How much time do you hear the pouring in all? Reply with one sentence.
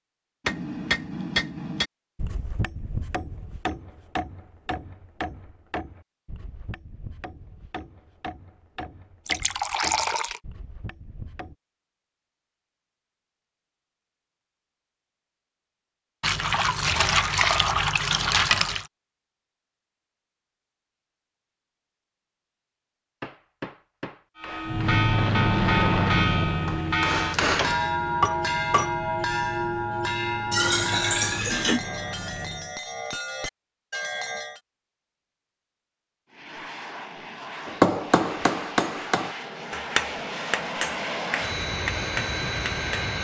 The pouring can be heard for 5 seconds in total.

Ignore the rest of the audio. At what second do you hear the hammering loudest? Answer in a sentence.
The volume of the hammering peaks at 38 seconds.